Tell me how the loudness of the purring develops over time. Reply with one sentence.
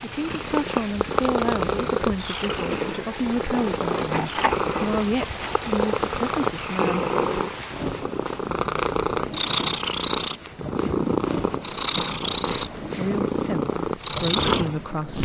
The volume of the purring stays about the same.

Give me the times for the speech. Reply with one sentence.
The speech can be heard from 0.0 to 7.0 s and from 12.9 to 15.2 s.